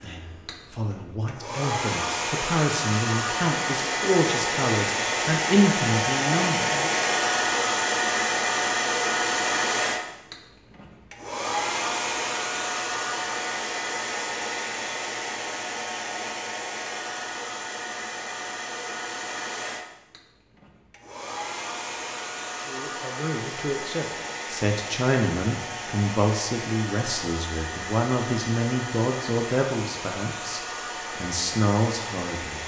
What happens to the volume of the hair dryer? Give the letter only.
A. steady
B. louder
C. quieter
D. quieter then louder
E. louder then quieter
C.